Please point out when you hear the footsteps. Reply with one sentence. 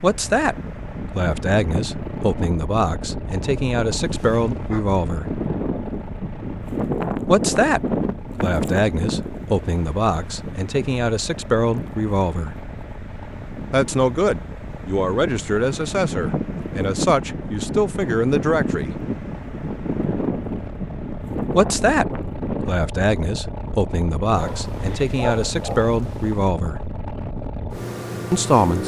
You can't hear the footsteps here.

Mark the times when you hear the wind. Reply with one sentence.
You can hear the wind from 0.0 to 22.9 s.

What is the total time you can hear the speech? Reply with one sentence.
The speech can be heard for 21 seconds in total.